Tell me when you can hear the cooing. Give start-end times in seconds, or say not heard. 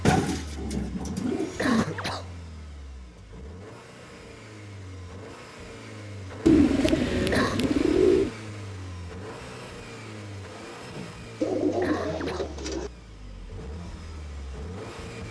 0.1-1.9, 6.5-8.3, 11.4-12.9.